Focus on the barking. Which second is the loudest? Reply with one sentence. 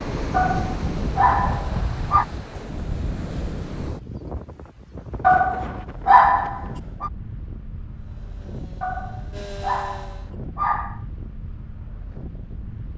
The volume of the barking peaks at 6 seconds.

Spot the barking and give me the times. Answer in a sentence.
The barking can be heard from 0.3 to 2.2 s, from 5.2 to 7.1 s and from 8.8 to 11.0 s.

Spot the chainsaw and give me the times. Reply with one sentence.
You can hear the chainsaw from 7.9 to 10.3 s.